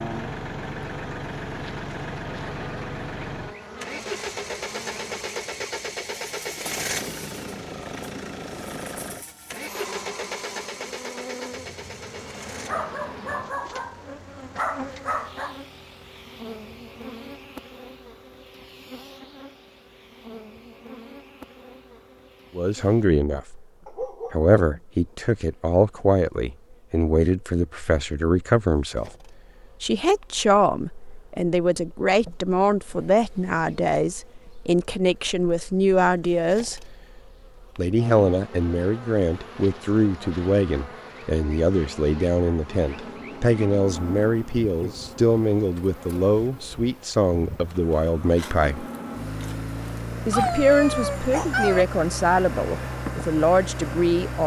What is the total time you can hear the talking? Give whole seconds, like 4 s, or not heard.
28 s.